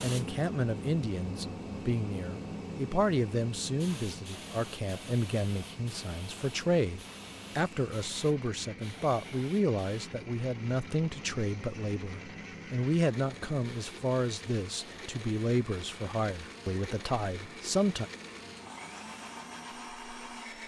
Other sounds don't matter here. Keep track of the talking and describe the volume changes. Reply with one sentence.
The loudness of the talking stays about the same.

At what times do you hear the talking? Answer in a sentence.
The talking can be heard from 0.0 to 18.1 s.